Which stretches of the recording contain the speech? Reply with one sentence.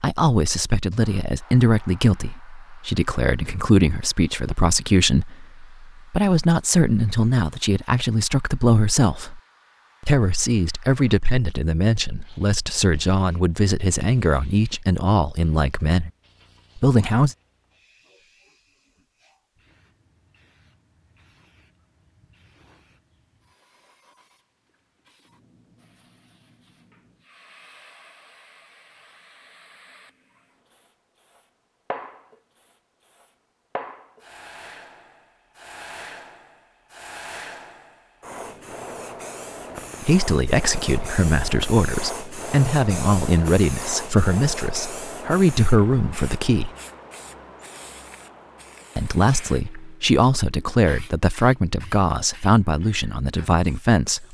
The speech can be heard from 0.0 to 9.4 s, from 10.0 to 16.1 s, from 16.8 to 17.4 s, from 40.0 to 46.7 s and from 49.0 to 54.2 s.